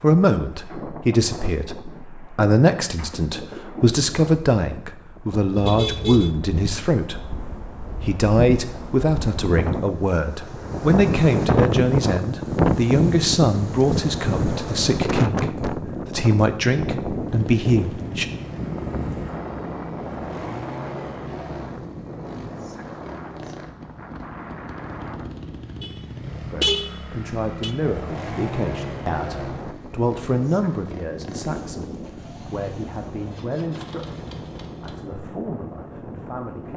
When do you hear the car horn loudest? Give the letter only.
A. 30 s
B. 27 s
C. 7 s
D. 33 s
B.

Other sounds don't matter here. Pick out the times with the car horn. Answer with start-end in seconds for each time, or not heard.
5.5-6.3, 25.8-27.8.